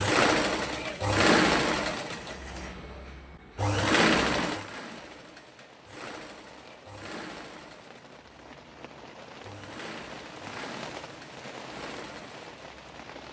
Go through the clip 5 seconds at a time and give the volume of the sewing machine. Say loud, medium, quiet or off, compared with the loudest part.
loud, quiet, quiet.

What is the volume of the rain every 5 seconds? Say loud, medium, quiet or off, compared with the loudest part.
off, medium, loud.